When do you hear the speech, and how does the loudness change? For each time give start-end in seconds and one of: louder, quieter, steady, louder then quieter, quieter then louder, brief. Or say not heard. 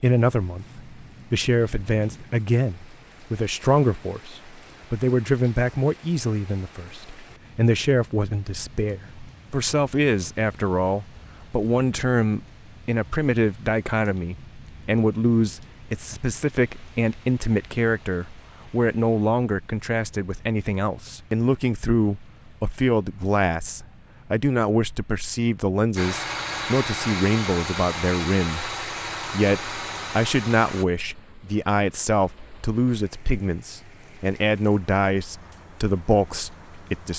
0.0-37.1 steady.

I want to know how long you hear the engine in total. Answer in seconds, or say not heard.
5 s.